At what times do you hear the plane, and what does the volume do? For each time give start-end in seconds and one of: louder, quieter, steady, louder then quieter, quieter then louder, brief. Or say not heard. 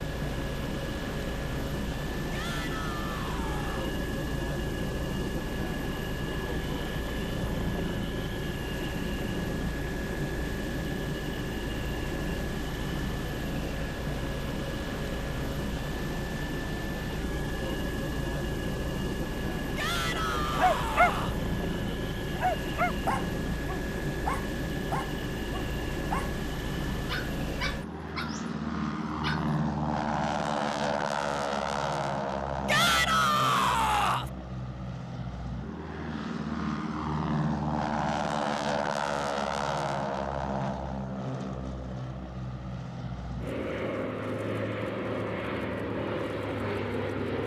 0.0-47.4 steady.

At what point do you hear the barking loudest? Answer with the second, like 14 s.
21 s.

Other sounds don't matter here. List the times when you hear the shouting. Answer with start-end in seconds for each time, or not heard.
2.3-4.0, 19.8-21.4, 32.6-34.3.